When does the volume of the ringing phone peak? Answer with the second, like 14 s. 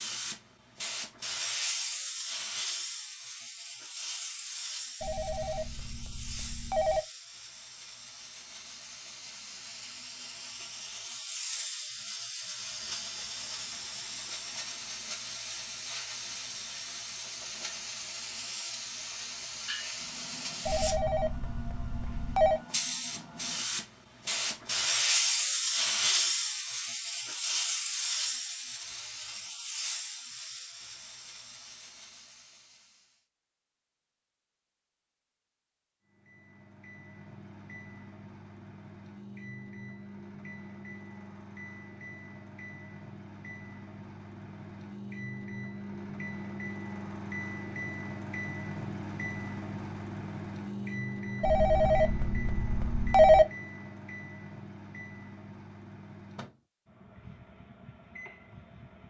53 s.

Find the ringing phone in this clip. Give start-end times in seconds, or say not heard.
5.0-7.0, 20.6-22.6, 51.4-53.5.